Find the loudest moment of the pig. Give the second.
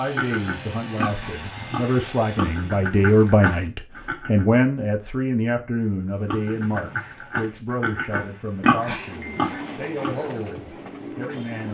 9 s.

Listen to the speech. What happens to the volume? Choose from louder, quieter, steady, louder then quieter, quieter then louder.
louder then quieter.